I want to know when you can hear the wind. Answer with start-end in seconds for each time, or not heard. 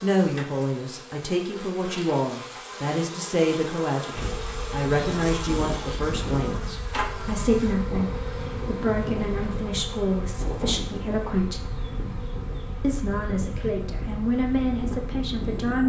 4.1-15.8.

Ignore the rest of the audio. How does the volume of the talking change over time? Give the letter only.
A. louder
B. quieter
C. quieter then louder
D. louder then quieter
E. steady
E.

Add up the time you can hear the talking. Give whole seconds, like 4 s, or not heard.
15 s.